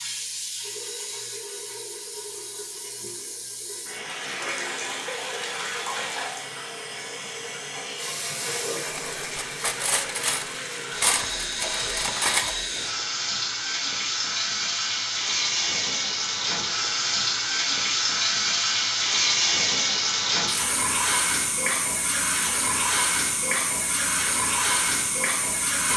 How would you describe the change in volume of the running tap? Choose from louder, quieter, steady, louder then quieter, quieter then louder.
louder.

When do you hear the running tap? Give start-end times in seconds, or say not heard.
0.0-25.9.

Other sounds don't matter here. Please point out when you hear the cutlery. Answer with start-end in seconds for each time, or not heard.
8.9-12.6.